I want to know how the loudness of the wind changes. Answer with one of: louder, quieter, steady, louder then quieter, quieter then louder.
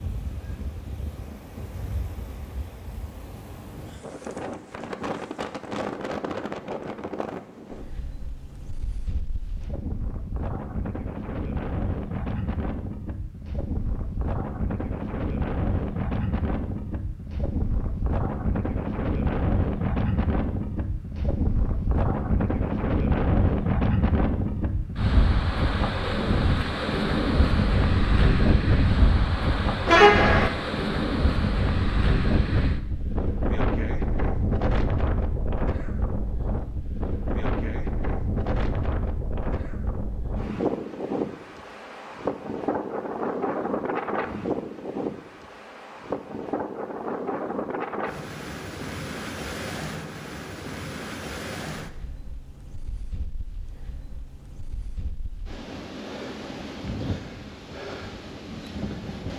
louder then quieter.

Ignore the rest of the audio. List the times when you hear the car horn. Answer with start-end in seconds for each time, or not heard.
29.9-30.5.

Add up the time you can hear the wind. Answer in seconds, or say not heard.
59 s.